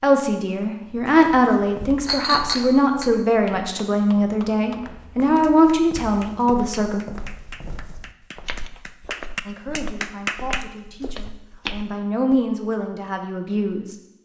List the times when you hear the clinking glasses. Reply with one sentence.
You can hear the clinking glasses from 2.0 to 3.1 s.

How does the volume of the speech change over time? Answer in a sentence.
The volume of the speech goes down, then up.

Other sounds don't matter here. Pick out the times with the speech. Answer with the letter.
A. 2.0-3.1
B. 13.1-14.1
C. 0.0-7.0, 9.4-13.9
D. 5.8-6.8
C.